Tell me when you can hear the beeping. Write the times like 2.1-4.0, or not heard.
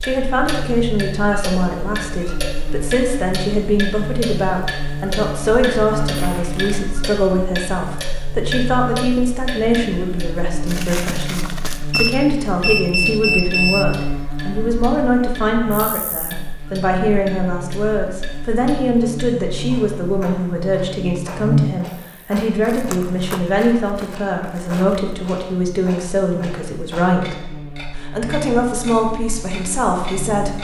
11.9-13.8.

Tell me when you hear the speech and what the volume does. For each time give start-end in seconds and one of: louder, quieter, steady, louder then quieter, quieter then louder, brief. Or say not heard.
0.0-30.5 steady.